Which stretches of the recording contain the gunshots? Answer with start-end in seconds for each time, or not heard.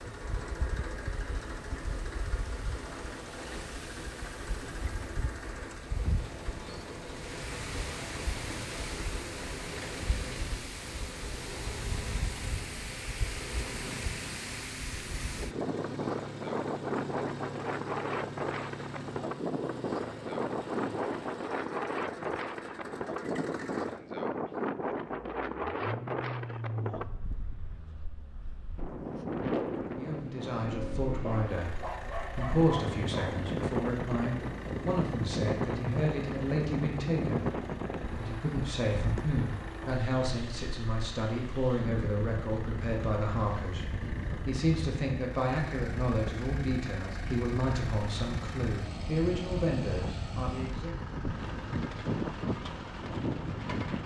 not heard.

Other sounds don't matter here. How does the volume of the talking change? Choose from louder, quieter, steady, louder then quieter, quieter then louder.
steady.